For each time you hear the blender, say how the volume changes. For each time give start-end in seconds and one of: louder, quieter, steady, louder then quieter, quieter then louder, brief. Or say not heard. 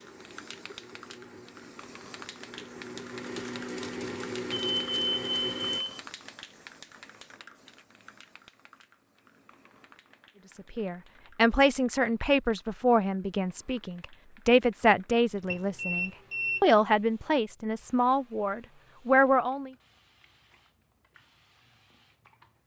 0.0-5.8 louder.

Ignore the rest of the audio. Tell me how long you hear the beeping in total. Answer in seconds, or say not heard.
3 s.